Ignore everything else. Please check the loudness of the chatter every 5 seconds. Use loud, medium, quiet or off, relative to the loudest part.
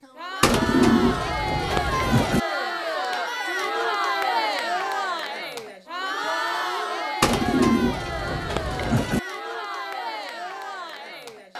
loud, loud, medium.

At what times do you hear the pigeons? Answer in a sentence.
The pigeons can be heard from 0.4 to 2.4 s and from 7.2 to 9.2 s.